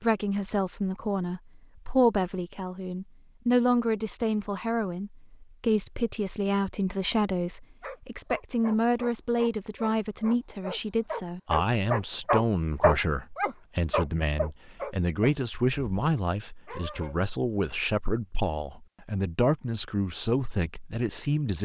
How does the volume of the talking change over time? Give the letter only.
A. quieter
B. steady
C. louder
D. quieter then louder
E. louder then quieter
B.